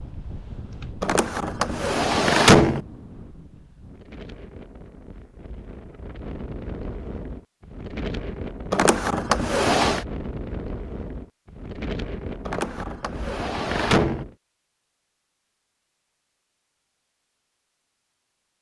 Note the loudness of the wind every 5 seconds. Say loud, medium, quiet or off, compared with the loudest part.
medium, loud, loud, off.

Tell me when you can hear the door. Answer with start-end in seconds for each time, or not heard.
1.0-2.8, 8.7-10.1, 12.4-14.2.